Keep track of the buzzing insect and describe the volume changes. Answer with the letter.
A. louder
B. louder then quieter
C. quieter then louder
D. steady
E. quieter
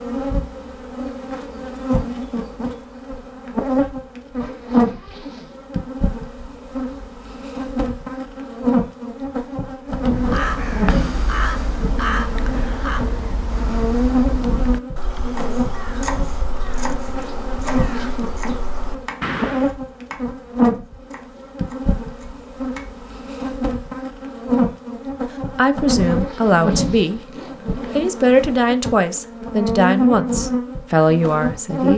D.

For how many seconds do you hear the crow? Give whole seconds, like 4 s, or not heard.
10 s.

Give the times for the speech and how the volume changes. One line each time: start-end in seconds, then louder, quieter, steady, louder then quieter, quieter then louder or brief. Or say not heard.
25.6-27.2 brief
27.9-31.9 quieter then louder.